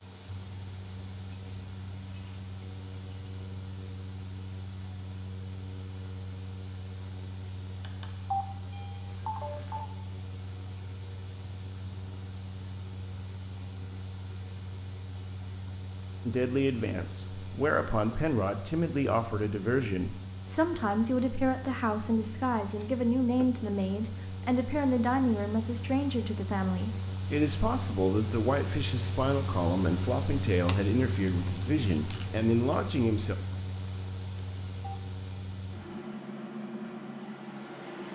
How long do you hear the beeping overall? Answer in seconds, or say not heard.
3 s.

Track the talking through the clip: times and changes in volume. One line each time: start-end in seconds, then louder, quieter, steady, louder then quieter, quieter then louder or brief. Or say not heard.
16.2-33.4 steady.